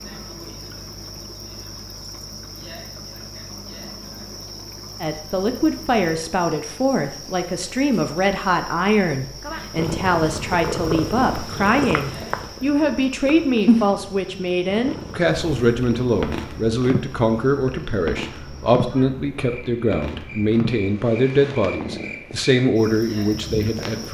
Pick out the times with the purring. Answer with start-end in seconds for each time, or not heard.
9.8-24.0.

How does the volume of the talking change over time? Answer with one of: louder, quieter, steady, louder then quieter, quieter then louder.
steady.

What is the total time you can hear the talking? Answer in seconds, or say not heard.
19 s.